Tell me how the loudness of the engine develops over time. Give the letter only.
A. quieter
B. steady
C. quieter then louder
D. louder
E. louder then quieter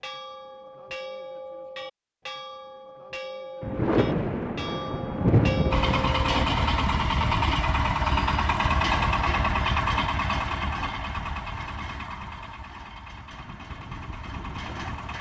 A.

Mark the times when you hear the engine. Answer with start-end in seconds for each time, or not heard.
5.7-15.1.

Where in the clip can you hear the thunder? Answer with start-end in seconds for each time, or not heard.
3.6-6.2.